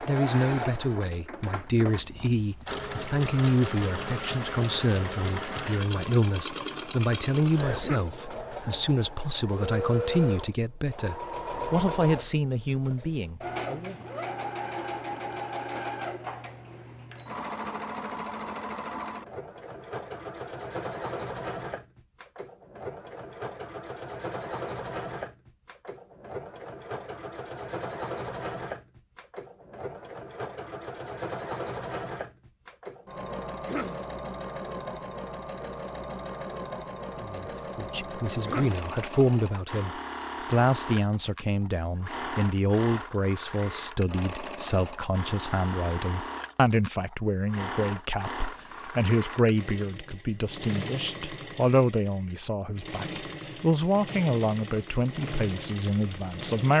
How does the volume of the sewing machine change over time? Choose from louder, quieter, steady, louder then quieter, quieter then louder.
steady.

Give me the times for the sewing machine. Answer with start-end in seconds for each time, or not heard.
0.0-56.7.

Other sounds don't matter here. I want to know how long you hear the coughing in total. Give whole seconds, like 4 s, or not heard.
2 s.